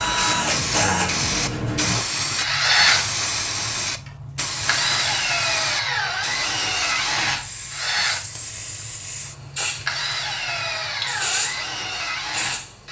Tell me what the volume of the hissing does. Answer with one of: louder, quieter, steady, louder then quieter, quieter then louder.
quieter.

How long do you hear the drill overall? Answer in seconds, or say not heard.
13 s.